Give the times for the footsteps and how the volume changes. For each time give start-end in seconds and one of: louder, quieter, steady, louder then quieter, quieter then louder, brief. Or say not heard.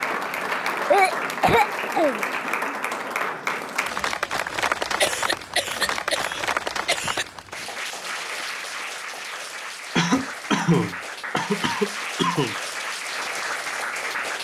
not heard.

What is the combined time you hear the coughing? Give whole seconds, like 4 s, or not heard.
7 s.